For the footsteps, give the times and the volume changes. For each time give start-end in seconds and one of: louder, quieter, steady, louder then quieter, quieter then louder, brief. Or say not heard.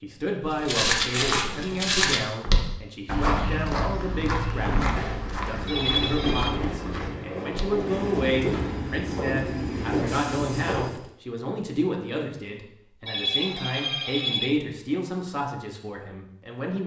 0.5-11.1 quieter.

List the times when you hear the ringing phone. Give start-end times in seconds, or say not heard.
5.7-6.6, 13.1-14.6.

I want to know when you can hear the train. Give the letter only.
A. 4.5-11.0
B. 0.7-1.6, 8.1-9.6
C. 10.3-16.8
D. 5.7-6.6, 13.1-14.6
A.